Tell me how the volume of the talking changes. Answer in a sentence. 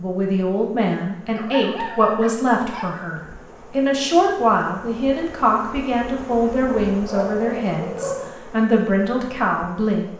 The volume of the talking stays about the same.